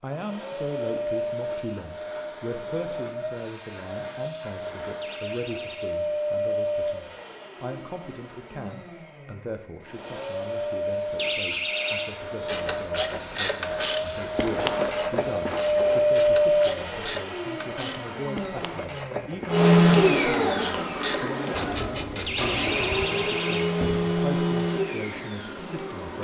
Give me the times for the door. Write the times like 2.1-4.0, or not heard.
5.0-5.9, 11.2-12.1, 22.2-24.0.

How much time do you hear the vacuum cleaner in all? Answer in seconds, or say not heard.
26 s.